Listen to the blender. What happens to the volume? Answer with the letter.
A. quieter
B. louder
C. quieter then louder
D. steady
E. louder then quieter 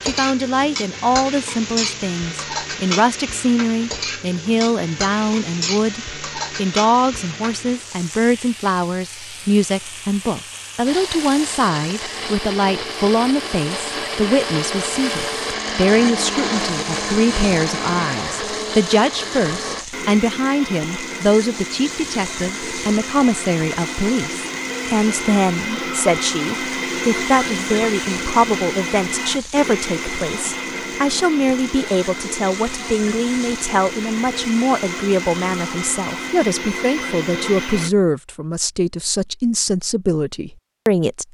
D.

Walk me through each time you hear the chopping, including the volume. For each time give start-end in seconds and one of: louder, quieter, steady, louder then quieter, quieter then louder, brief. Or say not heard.
not heard.